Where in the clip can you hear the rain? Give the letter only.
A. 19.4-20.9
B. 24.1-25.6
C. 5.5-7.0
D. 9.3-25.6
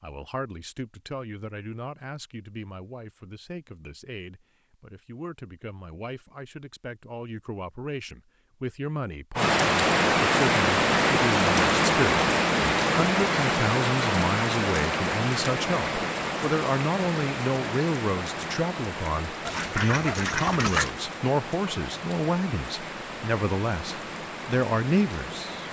D.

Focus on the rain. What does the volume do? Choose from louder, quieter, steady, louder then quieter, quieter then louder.
quieter.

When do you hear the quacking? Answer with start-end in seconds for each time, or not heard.
19.4-20.9.